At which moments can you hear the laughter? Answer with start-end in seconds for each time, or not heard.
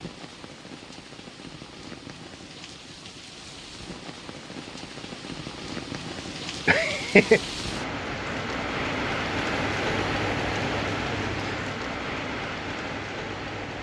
6.7-7.4.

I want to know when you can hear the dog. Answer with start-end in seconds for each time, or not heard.
not heard.